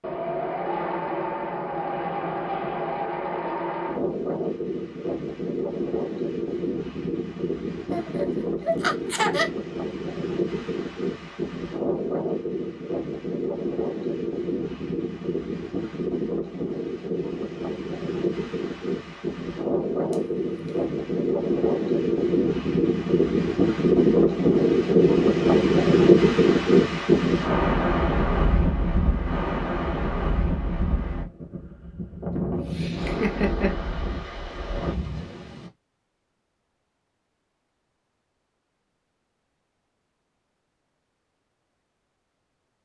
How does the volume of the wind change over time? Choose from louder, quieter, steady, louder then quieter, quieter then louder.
louder then quieter.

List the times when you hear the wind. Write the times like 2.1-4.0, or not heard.
0.0-35.7.